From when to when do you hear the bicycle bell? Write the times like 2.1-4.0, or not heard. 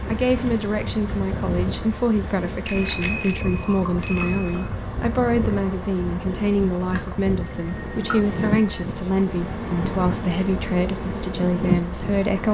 2.6-4.5, 7.4-8.8.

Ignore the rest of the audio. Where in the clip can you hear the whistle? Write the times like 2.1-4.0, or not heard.
not heard.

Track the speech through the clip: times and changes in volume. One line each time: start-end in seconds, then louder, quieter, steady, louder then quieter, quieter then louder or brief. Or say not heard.
0.1-12.4 steady.